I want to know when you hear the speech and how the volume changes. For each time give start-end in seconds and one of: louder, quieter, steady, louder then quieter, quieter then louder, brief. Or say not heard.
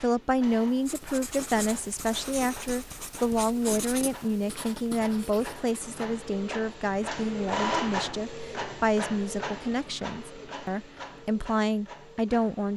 0.0-12.7 steady.